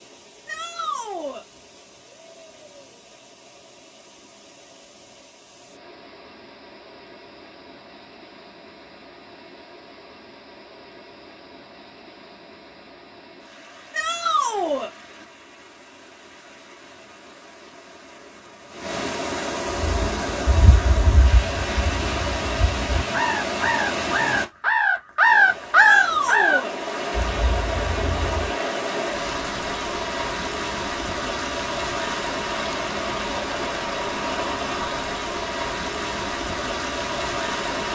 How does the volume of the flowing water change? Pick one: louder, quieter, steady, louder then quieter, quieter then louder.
louder.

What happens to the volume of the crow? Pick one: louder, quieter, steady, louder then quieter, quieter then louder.
louder then quieter.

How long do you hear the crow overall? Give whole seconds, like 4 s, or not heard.
9 s.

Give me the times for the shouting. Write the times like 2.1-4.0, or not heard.
0.5-1.4, 13.9-14.9, 25.8-26.7.